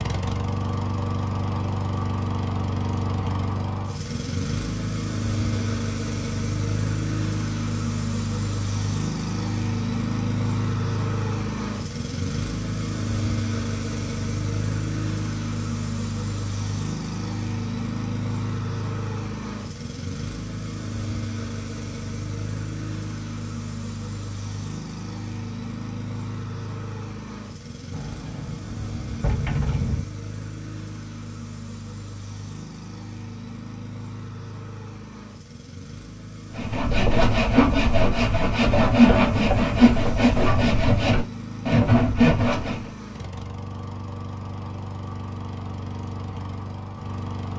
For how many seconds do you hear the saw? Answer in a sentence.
The saw can be heard for 6 seconds in total.